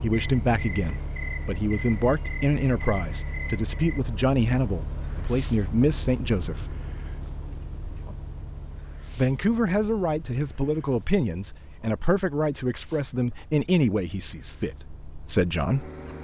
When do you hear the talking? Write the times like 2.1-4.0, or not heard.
0.0-6.7, 9.2-15.9.